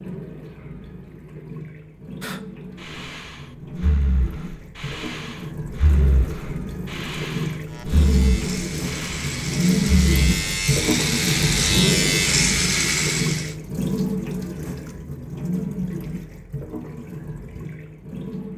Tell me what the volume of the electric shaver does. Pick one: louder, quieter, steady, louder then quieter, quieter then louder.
louder.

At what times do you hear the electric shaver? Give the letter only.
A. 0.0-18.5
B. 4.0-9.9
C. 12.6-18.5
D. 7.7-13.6
D.